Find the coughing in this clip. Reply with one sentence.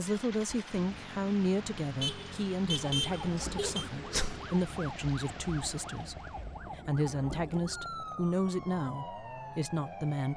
The coughing can be heard from 3.5 to 4.5 s.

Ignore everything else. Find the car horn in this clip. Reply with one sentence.
The car horn can be heard from 2.0 to 3.9 s.